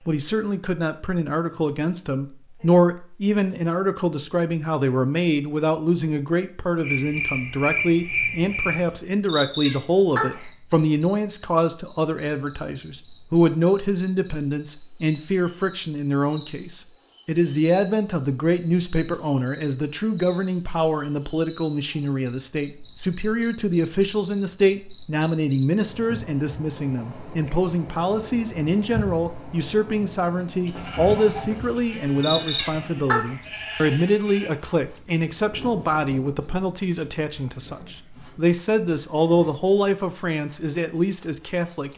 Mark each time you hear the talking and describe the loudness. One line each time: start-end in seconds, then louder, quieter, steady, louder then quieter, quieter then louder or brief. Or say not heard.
0.1-41.9 steady.